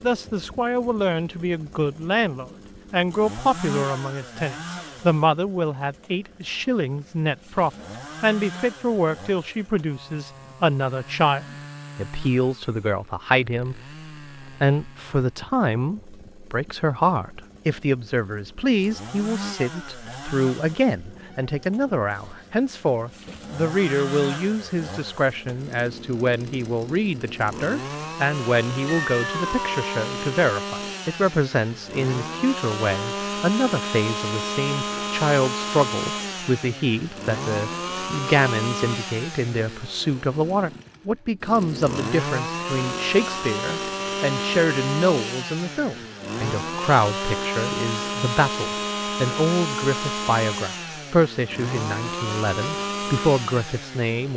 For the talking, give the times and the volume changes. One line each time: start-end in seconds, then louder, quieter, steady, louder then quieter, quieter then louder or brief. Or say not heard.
0.0-13.8 steady
14.4-54.3 steady.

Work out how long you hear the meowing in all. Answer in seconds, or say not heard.
2 s.